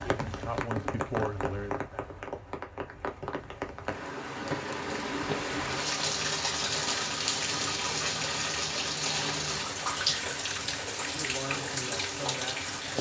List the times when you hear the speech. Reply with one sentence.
The speech can be heard from 0.0 to 2.0 s and from 10.6 to 12.7 s.